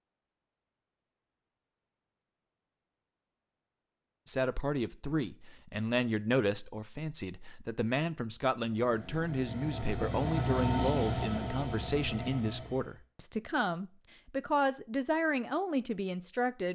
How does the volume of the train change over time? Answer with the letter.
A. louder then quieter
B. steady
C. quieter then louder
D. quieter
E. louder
A.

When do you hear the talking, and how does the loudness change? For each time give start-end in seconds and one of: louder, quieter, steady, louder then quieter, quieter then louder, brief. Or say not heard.
4.2-16.7 steady.